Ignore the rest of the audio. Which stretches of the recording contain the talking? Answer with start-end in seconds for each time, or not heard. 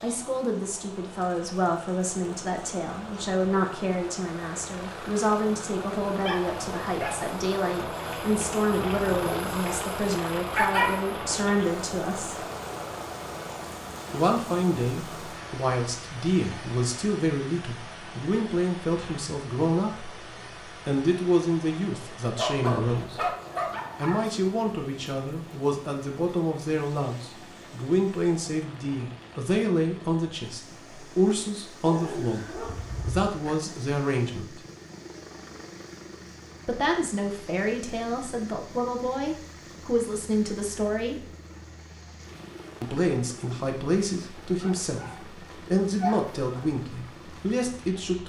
0.0-12.4, 14.1-23.3, 23.9-34.6, 36.6-41.3, 42.8-48.2.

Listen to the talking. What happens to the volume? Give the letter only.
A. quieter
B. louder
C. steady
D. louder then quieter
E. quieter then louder
C.